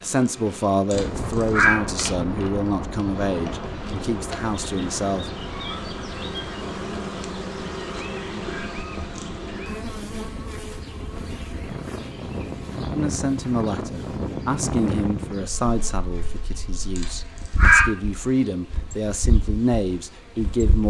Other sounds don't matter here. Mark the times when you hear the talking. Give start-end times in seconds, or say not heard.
0.0-5.3, 12.9-20.8.